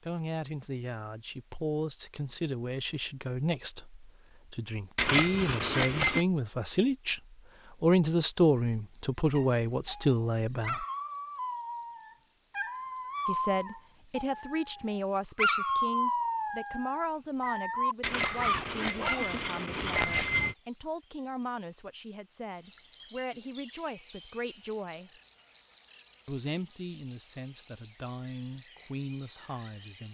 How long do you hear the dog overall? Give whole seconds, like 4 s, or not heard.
10 s.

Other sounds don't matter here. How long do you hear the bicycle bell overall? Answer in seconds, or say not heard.
4 s.